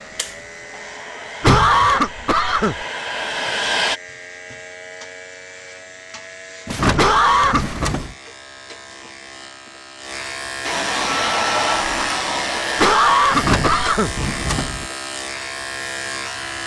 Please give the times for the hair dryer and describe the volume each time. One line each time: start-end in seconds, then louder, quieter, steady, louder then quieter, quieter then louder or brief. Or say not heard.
0.0-4.0 louder
10.6-12.9 brief.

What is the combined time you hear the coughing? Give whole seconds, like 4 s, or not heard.
4 s.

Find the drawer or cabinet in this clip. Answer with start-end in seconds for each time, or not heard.
1.4-1.9, 6.7-8.2, 13.3-14.9.